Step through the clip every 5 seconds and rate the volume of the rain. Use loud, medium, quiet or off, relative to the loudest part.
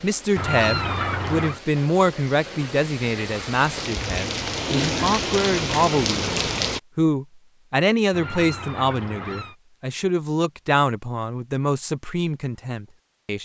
medium, loud, off.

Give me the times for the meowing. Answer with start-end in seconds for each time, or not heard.
0.3-1.6, 8.1-9.6.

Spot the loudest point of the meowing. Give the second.
1 s.